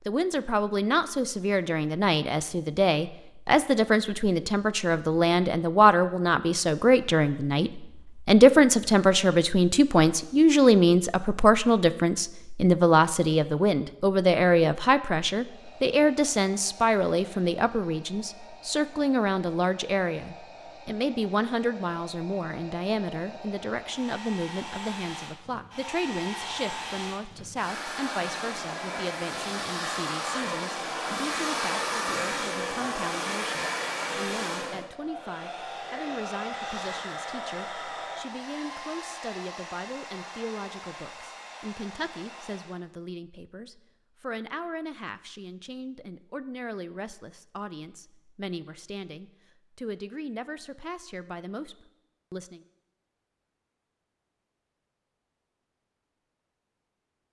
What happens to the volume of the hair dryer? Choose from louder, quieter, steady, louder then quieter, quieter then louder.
louder then quieter.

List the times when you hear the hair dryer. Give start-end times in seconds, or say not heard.
15.3-42.8.